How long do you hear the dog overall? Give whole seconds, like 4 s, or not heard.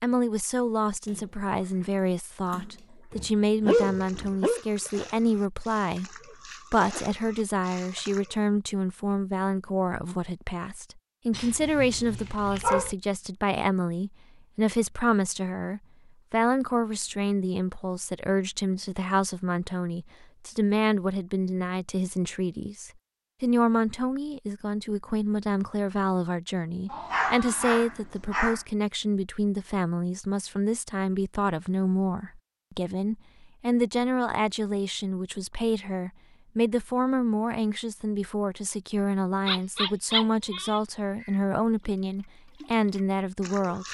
7 s.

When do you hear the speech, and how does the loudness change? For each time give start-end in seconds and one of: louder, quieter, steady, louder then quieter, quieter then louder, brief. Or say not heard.
0.0-43.9 steady.